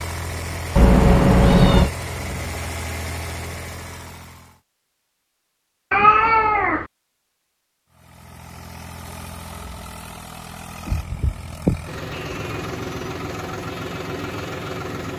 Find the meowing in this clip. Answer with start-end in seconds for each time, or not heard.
0.8-1.9, 5.9-6.8, 10.8-12.6.